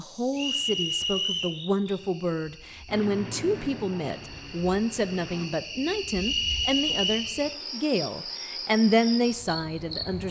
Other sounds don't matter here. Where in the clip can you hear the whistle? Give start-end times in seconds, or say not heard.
0.3-1.6, 6.2-7.3.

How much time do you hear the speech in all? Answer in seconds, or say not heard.
10 s.